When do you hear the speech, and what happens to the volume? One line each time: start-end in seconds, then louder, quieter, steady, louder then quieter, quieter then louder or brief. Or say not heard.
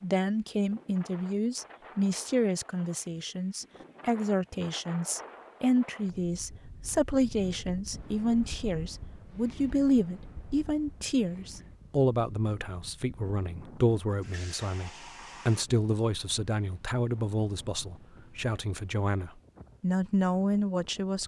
0.0-21.2 steady.